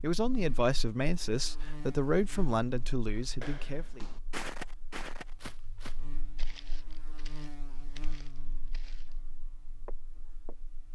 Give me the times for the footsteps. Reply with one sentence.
You can hear the footsteps from 3.1 to 9.2 s and from 9.8 to 10.6 s.